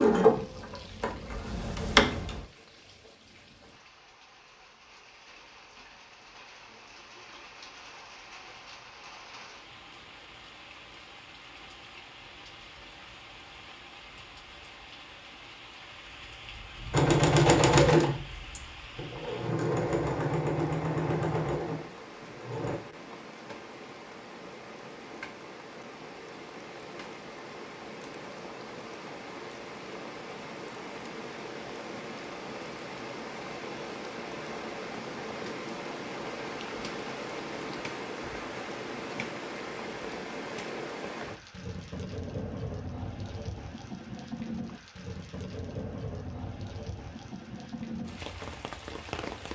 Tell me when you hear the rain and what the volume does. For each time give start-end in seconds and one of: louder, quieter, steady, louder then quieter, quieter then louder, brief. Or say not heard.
0.1-49.4 louder.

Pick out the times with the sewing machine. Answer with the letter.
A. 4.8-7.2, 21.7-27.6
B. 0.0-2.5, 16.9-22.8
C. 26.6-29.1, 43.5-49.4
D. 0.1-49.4
B.